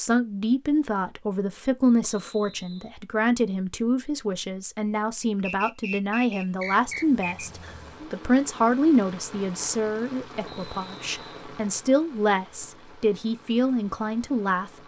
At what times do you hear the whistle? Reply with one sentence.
The whistle can be heard from 2.0 to 3.0 s, from 5.4 to 7.5 s and from 10.4 to 11.4 s.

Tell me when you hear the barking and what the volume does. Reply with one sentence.
You can't hear the barking here.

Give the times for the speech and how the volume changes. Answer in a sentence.
The speech can be heard from 0.0 to 14.8 s, at a steady volume.